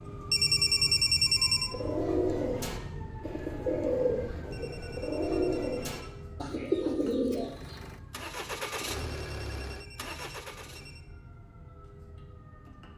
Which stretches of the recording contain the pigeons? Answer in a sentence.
The pigeons can be heard from 1.7 to 7.8 s.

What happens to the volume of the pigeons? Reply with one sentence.
The volume of the pigeons goes down, then up.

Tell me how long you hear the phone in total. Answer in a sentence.
The phone can be heard for 5 seconds in total.